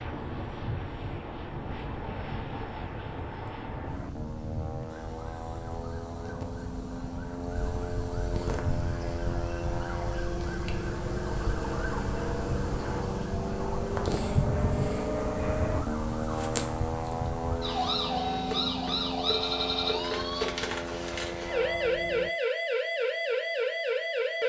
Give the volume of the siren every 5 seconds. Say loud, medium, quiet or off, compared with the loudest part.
quiet, medium, medium, loud, loud.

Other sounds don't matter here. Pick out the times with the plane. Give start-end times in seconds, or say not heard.
0.0-22.3.